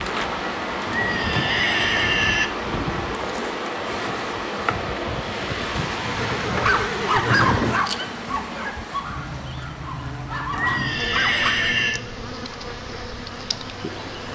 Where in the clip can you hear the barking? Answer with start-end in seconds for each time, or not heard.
6.5-11.6.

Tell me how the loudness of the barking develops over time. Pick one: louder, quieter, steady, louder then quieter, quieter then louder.
quieter then louder.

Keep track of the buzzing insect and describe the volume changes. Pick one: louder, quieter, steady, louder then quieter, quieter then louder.
steady.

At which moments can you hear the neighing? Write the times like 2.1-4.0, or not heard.
0.8-2.5, 6.0-7.8, 10.5-12.0.